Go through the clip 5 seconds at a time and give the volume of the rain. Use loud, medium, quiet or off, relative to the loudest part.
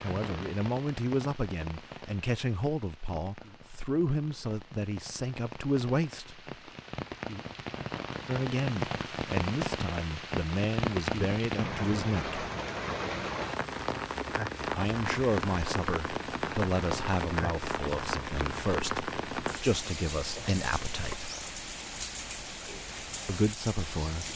medium, loud, loud, loud, medium.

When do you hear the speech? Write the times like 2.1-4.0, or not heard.
0.0-6.4, 8.2-12.4, 14.7-21.3, 23.2-24.3.